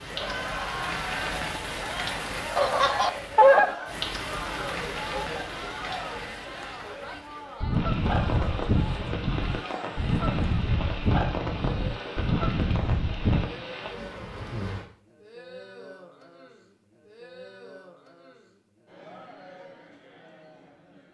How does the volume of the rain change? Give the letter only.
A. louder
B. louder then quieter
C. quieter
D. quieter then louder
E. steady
E.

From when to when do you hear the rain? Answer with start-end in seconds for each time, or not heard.
0.0-14.8.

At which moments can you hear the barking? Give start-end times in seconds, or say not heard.
not heard.